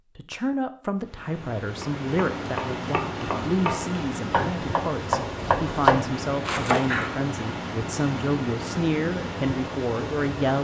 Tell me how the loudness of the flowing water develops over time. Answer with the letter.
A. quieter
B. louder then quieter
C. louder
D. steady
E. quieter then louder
D.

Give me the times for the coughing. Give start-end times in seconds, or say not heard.
not heard.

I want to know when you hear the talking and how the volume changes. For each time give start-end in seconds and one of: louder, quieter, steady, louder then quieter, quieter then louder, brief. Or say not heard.
0.1-10.5 steady.